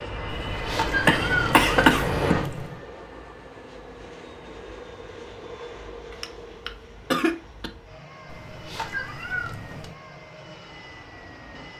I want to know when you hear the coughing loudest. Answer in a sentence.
The volume of the coughing peaks at 2 seconds.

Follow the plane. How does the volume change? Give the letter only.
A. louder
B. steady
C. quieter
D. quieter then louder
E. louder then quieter
C.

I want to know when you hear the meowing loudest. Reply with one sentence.
The loudest moment of the meowing is at 1 second.